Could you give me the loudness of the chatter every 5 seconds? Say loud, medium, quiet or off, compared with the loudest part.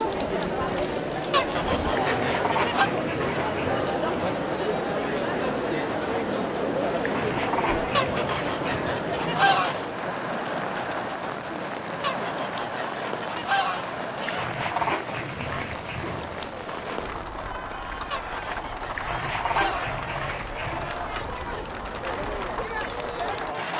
loud, loud, medium, quiet, medium.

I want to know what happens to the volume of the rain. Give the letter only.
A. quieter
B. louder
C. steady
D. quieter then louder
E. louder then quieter
C.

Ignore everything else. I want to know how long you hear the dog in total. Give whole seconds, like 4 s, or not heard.
8 s.